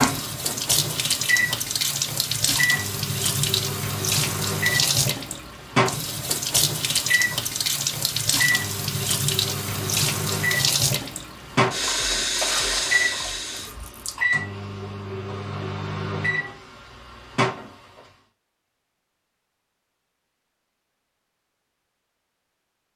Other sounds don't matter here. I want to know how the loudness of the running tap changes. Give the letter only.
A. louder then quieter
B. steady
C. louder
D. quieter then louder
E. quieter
B.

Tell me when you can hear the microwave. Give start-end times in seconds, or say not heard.
0.0-17.7.